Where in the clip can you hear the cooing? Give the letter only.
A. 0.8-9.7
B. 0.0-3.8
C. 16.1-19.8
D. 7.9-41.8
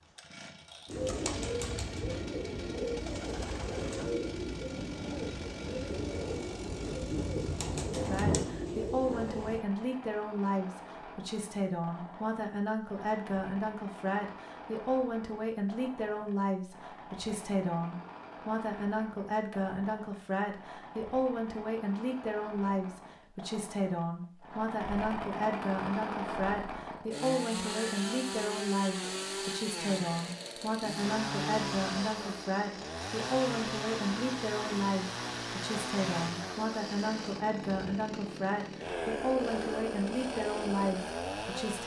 A.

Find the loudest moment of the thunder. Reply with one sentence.
The volume of the thunder peaks at 8 seconds.